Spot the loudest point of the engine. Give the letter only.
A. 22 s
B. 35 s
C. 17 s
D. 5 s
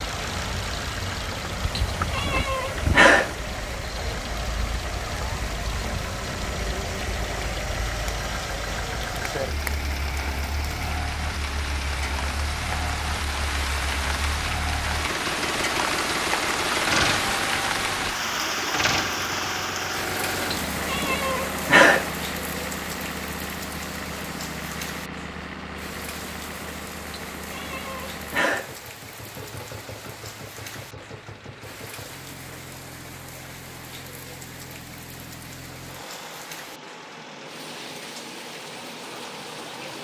C.